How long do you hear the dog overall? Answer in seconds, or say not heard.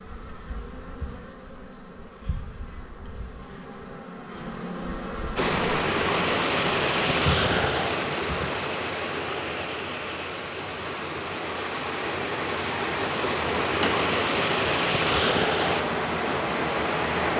not heard.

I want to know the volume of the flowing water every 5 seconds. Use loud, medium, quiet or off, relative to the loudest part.
off, loud, loud, loud.